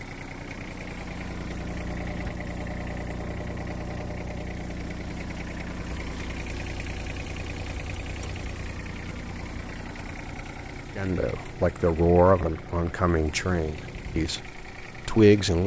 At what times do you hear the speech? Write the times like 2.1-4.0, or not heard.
10.9-15.6.